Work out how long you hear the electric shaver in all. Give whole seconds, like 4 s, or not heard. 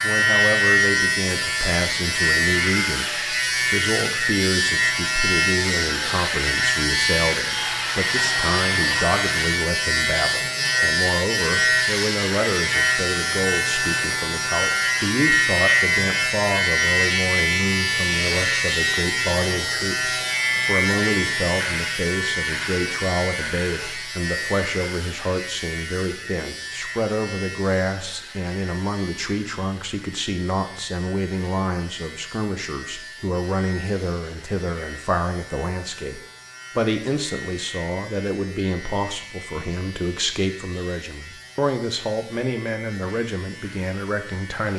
45 s.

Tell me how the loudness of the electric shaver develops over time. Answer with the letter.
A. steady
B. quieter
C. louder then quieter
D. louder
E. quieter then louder
B.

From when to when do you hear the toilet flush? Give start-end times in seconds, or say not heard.
7.5-9.2.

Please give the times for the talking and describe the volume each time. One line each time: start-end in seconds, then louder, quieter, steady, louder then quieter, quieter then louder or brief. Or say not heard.
0.0-44.7 steady.